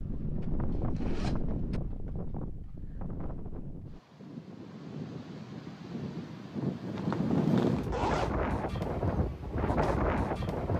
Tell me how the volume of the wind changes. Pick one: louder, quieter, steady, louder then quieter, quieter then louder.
quieter then louder.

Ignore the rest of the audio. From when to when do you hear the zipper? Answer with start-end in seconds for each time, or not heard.
0.7-1.8, 7.0-8.4.